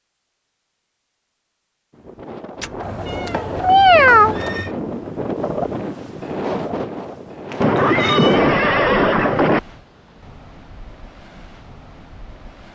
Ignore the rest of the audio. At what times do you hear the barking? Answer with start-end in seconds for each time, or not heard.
not heard.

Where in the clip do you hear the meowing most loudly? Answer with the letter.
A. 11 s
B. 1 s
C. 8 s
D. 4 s
D.